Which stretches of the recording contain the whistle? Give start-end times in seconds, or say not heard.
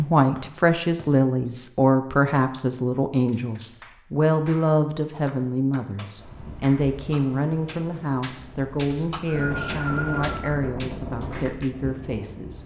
0.3-1.1, 8.8-10.6.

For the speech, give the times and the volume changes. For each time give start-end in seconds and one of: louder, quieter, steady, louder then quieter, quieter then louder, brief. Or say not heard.
0.0-12.6 quieter.